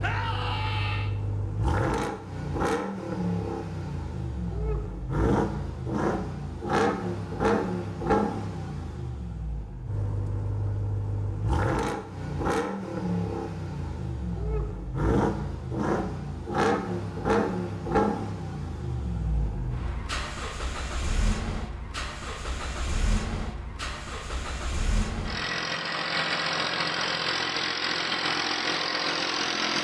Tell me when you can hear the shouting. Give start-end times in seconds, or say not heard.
0.0-1.1.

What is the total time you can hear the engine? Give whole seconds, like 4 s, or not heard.
30 s.